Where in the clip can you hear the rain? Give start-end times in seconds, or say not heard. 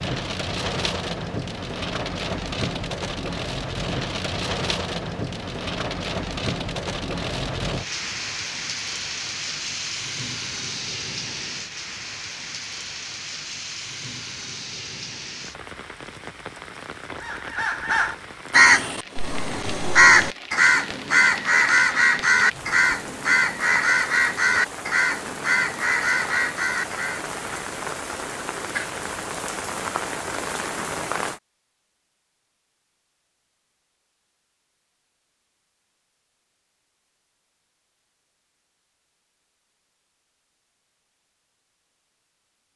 0.0-31.4.